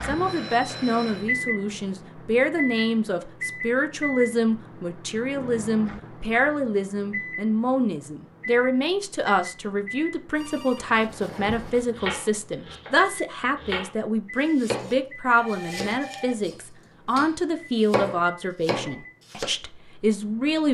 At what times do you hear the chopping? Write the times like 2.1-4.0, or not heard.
10.8-12.9, 13.6-19.4.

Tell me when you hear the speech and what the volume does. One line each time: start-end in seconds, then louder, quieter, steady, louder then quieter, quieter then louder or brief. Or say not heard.
0.0-20.6 steady.